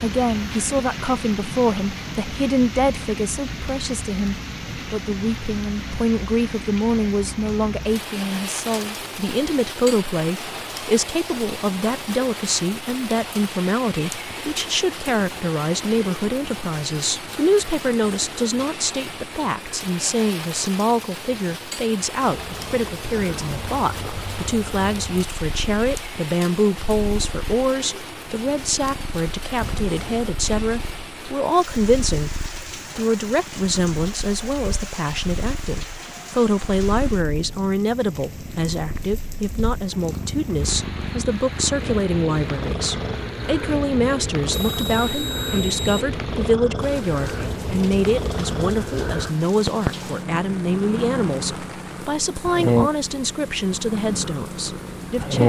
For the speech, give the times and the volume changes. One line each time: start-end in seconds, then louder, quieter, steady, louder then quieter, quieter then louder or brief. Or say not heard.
0.0-55.4 steady.